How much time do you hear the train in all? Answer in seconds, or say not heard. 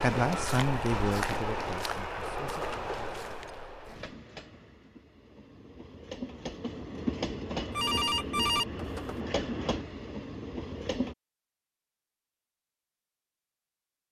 11 s.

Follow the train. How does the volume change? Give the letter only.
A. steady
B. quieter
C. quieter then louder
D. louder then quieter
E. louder
C.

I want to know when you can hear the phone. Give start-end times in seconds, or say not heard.
2.7-3.5, 7.7-9.2.